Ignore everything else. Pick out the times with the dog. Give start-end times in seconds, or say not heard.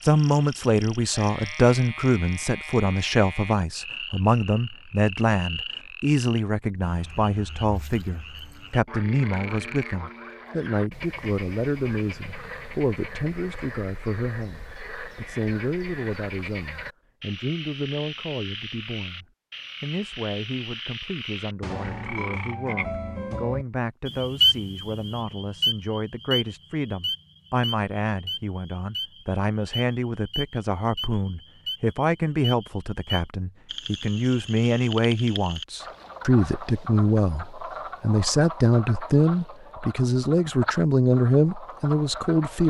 not heard.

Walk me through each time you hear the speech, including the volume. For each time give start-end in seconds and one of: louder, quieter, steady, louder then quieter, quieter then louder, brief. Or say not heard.
0.0-42.6 quieter then louder.